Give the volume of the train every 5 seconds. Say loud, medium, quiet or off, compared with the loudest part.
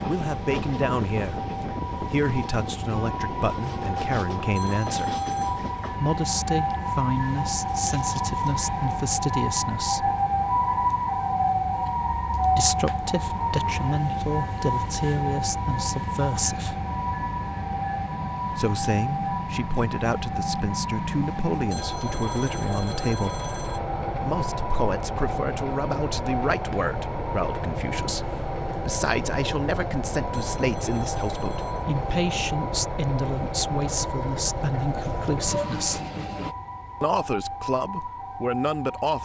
loud, medium, medium, loud, loud, loud, loud, loud.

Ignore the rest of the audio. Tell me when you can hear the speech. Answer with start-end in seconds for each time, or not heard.
0.1-5.2, 5.9-10.2, 12.5-16.8, 18.5-23.4, 24.2-36.0, 37.0-39.2.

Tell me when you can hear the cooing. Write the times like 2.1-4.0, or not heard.
not heard.